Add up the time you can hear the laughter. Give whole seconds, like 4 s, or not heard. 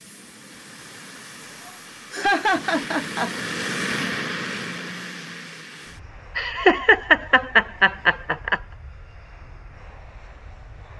4 s.